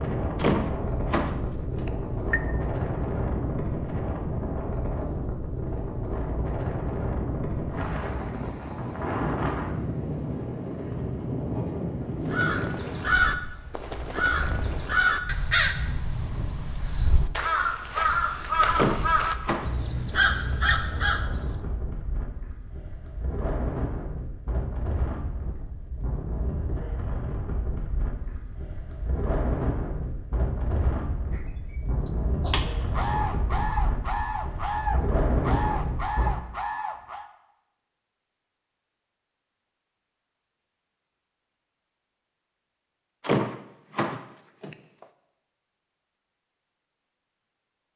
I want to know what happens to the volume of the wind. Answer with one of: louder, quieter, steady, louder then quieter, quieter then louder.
quieter then louder.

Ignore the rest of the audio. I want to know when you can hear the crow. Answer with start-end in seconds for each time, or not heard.
12.2-21.6, 31.3-37.2.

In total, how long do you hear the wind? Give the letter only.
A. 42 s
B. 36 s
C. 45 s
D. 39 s
B.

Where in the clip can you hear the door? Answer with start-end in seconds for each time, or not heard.
0.3-2.4, 18.8-20.8, 43.2-45.0.